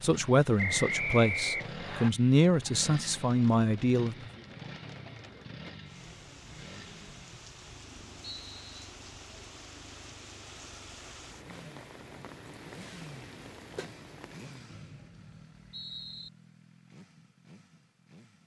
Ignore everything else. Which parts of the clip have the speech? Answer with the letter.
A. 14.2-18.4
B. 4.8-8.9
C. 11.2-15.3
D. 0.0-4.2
D.